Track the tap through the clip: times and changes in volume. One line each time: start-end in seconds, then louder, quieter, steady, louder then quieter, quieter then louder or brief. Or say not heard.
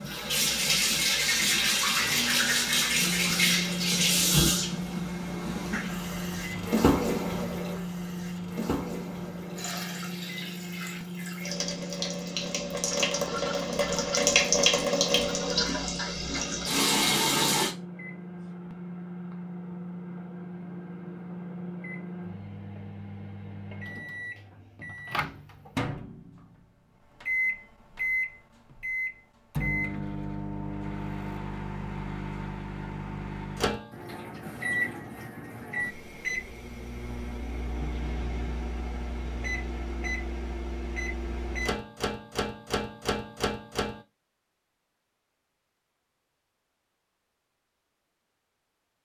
0.0-17.8 quieter then louder.